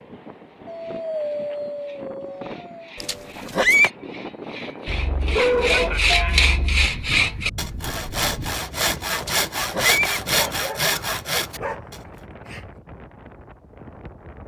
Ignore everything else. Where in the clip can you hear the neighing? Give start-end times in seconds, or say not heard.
3.0-3.9, 9.2-10.2.